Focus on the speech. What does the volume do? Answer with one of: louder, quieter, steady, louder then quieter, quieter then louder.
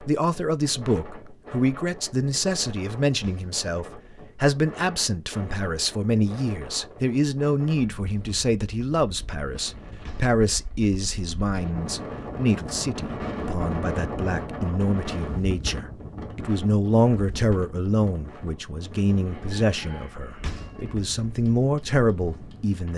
steady.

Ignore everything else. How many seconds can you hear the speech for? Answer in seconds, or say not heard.
23 s.